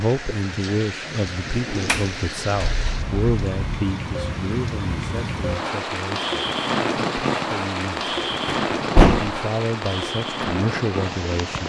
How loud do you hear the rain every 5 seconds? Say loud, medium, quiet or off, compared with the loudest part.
medium, loud, loud.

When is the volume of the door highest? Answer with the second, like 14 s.
9 s.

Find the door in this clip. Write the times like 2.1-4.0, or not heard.
1.9-3.6, 8.4-9.3.